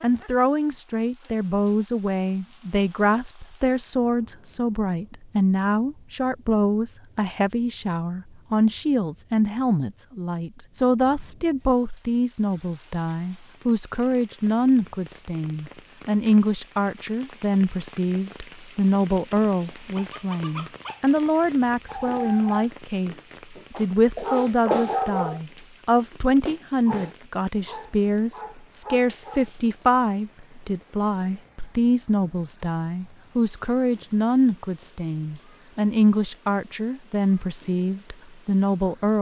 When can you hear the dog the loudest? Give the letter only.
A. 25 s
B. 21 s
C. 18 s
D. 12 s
A.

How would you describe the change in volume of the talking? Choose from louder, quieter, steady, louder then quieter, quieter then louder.
steady.